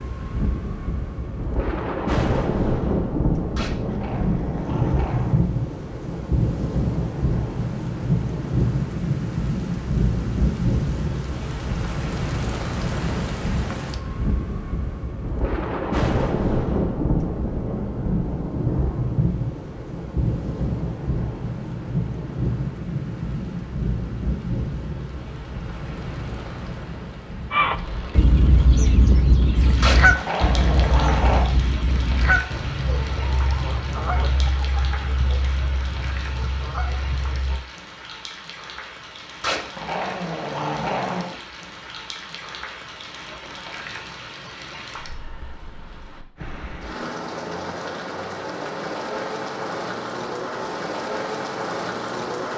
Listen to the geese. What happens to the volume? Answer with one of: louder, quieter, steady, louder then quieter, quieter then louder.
quieter.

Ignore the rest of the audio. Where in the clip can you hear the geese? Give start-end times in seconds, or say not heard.
27.5-37.5.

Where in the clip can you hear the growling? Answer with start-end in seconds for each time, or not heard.
3.5-5.5, 29.8-31.5, 39.4-41.4.